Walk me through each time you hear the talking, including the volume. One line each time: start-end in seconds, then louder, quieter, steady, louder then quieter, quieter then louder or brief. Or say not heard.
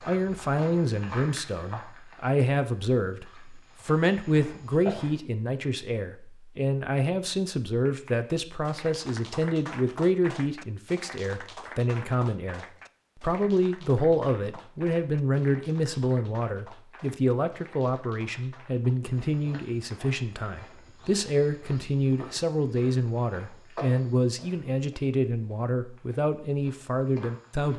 0.1-27.7 steady.